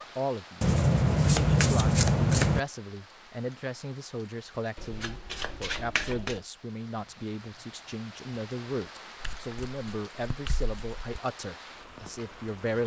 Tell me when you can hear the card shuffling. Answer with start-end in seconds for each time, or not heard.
0.6-2.6, 4.8-6.3, 9.2-11.2.